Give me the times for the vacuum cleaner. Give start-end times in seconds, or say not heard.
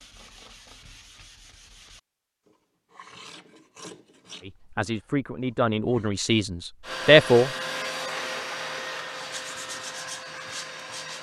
6.8-11.1.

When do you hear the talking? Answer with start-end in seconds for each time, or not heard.
4.5-7.5.